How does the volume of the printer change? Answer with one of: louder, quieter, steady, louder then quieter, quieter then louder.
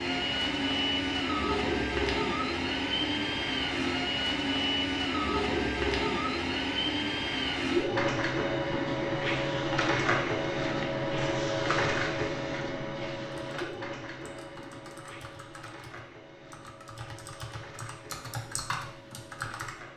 quieter.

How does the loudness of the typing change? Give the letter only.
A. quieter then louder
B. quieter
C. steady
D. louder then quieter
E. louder
E.